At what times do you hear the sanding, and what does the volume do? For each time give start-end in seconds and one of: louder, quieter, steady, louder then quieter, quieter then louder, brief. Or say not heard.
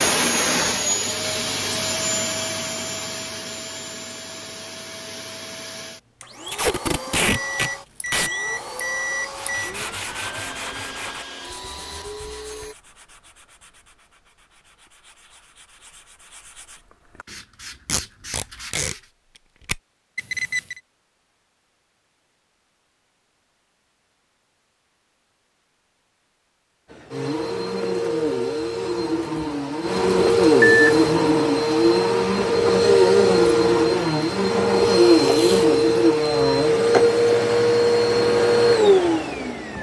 9.2-19.1 quieter then louder.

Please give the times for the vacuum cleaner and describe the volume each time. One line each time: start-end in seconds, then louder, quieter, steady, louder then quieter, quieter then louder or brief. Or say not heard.
0.0-12.8 quieter
26.9-39.7 louder.